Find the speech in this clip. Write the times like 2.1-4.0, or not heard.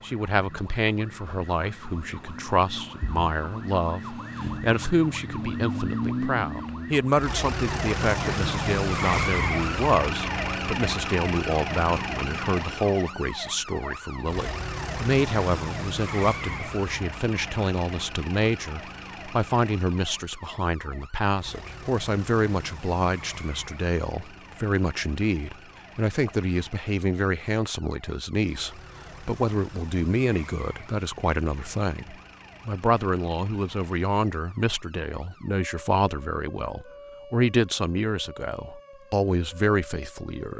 0.0-40.5.